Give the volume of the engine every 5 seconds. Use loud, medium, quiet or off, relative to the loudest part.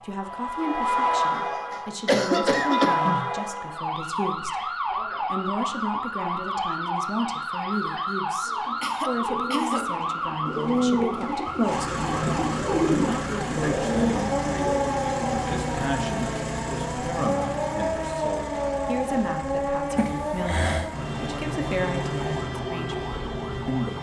off, off, loud, loud, medium.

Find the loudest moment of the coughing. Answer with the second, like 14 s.
2 s.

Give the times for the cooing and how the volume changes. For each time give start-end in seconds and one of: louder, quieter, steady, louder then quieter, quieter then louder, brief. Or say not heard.
8.4-14.2 louder.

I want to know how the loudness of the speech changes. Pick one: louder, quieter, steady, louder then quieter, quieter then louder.
steady.